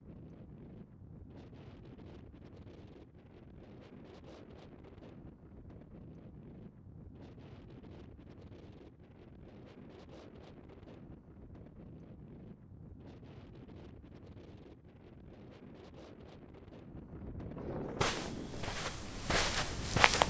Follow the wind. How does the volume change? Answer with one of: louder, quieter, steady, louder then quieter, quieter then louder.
louder.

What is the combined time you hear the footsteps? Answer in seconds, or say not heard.
2 s.